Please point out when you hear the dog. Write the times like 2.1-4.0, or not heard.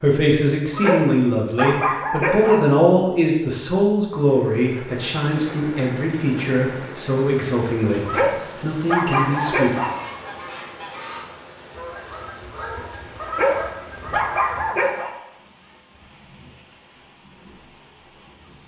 0.7-2.7, 8.1-10.0, 13.2-15.1.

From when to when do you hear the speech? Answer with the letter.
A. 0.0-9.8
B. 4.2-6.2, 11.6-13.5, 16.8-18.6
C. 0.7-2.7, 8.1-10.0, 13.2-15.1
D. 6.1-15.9
A.